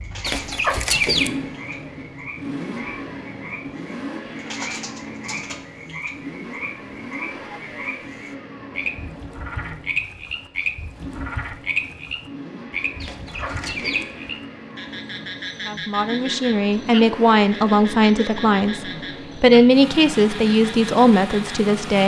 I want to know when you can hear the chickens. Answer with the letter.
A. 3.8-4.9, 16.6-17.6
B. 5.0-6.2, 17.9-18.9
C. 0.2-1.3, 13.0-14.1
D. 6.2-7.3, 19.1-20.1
C.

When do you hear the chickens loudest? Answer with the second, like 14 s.
1 s.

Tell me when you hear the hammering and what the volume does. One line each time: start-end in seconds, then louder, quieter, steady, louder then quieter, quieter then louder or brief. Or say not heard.
not heard.